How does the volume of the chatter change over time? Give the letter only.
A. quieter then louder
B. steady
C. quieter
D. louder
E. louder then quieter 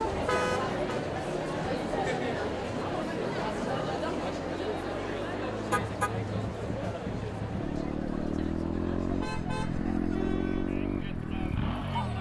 C.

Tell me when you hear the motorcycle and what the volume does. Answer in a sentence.
The motorcycle can be heard from 0.0 to 12.1 s, getting louder.